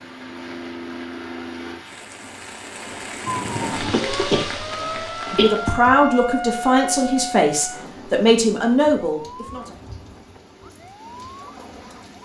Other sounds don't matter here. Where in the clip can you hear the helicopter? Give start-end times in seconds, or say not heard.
0.0-1.9.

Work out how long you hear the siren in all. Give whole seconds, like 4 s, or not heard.
9 s.